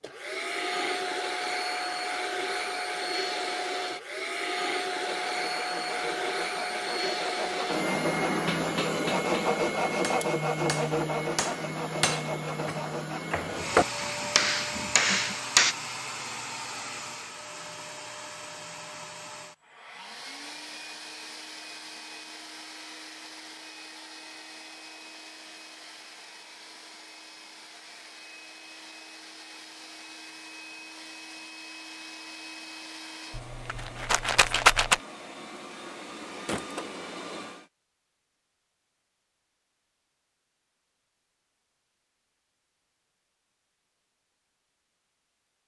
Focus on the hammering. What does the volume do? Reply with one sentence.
The loudness of the hammering goes up.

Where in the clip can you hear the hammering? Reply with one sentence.
The hammering can be heard from 8.3 to 15.8 s.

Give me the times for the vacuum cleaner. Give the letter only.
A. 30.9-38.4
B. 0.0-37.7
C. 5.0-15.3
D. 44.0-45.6
B.